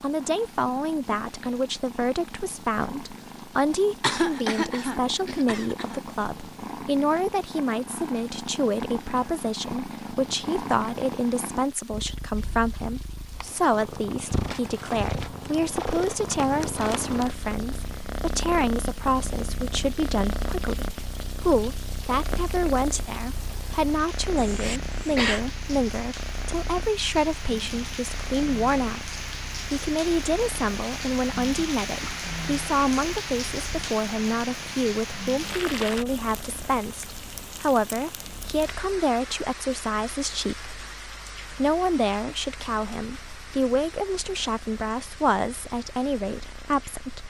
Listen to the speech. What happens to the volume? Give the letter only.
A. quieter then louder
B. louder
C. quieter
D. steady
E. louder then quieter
D.